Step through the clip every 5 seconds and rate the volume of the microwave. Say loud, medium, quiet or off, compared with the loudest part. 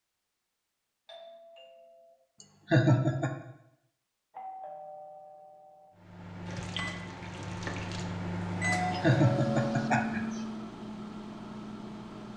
off, loud, loud.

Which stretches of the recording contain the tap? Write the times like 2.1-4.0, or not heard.
6.5-8.1.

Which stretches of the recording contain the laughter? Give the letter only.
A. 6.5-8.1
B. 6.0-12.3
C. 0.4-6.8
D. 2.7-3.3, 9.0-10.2
D.